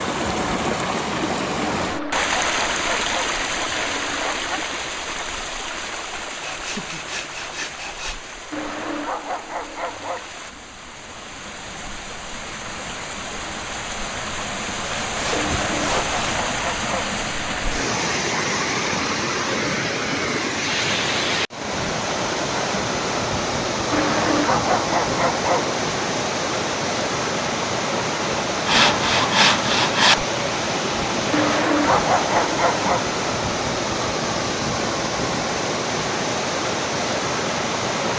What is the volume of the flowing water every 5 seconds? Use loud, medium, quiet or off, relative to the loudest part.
loud, medium, medium, loud, loud, loud, loud, loud.